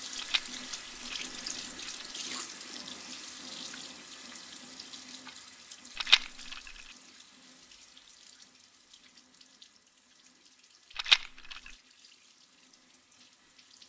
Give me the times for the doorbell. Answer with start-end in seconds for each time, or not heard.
not heard.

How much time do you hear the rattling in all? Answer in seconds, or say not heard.
3 s.